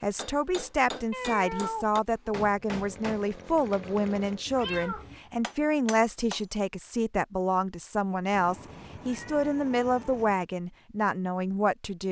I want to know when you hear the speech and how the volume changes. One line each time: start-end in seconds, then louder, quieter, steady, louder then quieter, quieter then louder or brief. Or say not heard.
0.0-12.0 steady.